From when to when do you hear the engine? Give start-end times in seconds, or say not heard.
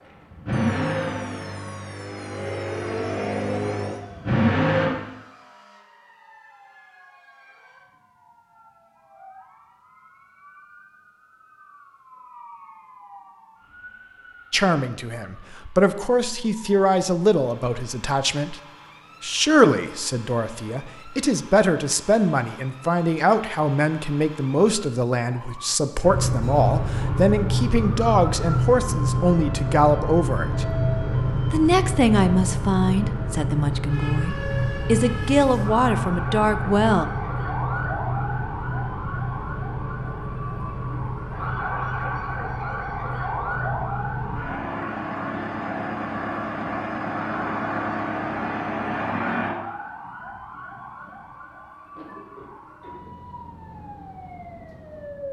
0.0-4.9, 26.0-49.5.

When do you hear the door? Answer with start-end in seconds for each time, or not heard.
not heard.